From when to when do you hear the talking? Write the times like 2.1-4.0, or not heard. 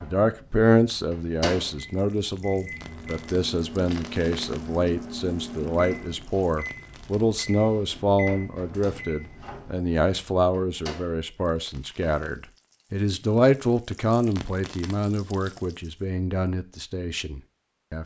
0.0-18.0.